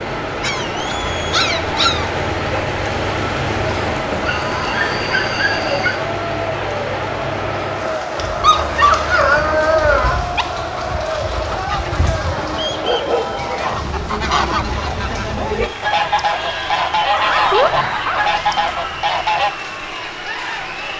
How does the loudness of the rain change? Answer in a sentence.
The volume of the rain goes down.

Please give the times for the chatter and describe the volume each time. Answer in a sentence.
The chatter can be heard from 0.0 to 20.9 s, at a steady volume.